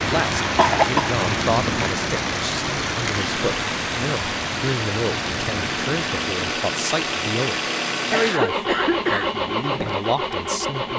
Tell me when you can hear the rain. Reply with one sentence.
You can hear the rain from 0.0 to 6.5 s.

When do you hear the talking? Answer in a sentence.
You can hear the talking from 0.0 to 10.9 s.